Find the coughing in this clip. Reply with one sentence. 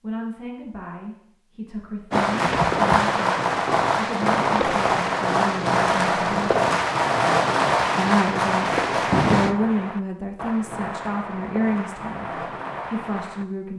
You can hear the coughing from 2.4 to 3.0 s.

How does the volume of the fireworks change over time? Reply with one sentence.
The volume of the fireworks goes down.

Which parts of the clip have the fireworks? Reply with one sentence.
The fireworks can be heard from 2.1 to 13.4 s.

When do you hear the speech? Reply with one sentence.
The speech can be heard from 0.0 to 6.5 s and from 8.0 to 13.7 s.